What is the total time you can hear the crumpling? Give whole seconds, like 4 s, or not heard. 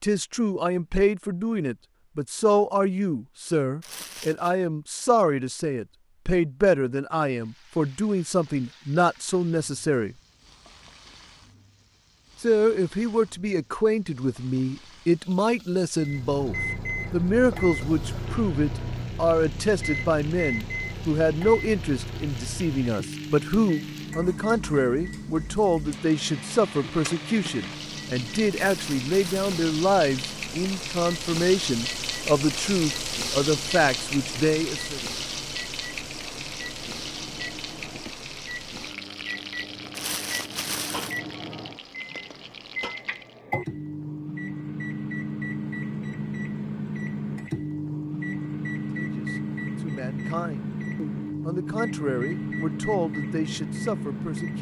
3 s.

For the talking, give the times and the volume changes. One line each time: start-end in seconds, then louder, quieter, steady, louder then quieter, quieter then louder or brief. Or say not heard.
0.0-10.2 steady
12.4-35.0 steady
48.9-54.5 louder.